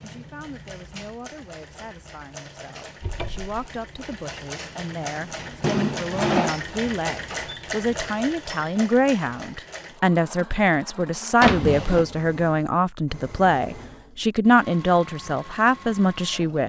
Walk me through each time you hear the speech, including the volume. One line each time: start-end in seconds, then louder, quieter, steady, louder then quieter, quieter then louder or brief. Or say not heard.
0.0-16.6 louder.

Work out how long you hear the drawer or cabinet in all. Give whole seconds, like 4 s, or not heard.
2 s.